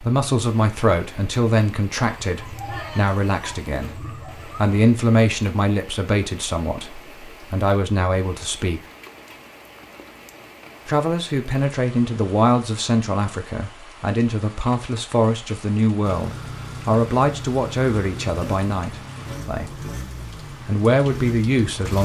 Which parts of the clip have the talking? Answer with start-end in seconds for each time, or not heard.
0.0-8.8, 10.8-19.9, 20.6-22.0.